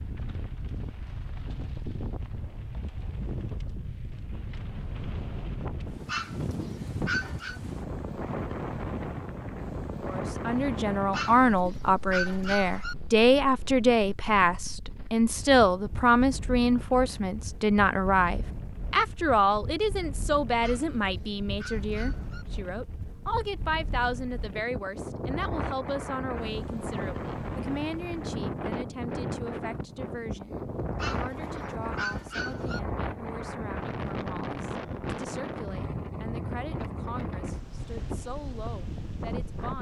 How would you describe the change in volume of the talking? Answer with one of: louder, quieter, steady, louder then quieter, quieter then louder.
quieter.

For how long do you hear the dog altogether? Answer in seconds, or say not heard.
7 s.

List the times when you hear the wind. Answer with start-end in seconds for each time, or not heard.
0.0-39.7.